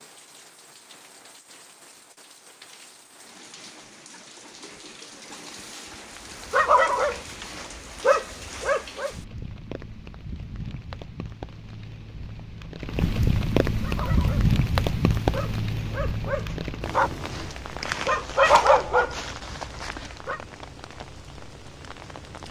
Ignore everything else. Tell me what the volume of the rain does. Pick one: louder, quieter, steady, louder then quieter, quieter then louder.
louder then quieter.